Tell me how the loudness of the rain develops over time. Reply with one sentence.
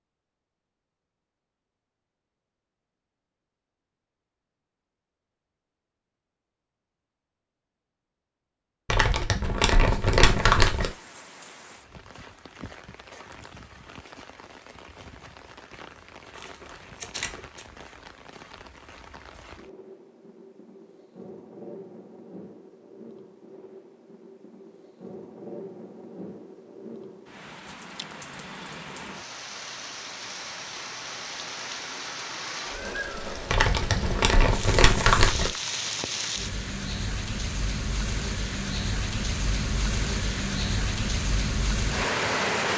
The loudness of the rain goes up.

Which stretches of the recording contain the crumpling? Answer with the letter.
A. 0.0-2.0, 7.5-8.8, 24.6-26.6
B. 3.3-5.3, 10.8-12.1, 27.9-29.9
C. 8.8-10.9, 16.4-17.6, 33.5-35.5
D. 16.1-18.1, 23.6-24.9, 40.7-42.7
C.